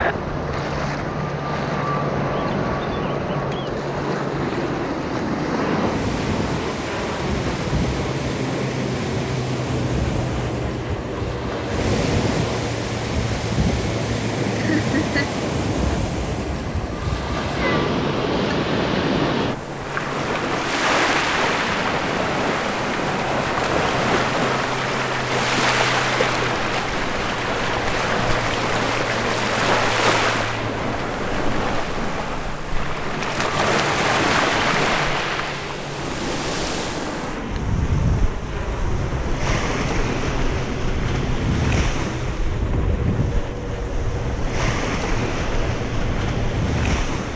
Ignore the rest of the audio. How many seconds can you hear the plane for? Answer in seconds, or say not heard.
47 s.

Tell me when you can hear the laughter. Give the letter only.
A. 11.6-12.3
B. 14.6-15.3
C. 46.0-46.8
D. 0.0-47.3
B.